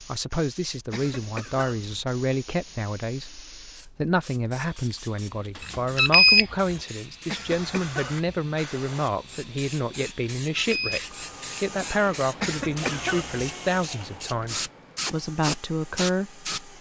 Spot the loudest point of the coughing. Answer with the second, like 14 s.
13 s.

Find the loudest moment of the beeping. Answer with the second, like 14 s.
6 s.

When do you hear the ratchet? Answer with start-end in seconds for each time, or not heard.
not heard.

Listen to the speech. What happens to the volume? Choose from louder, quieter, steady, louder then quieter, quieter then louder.
steady.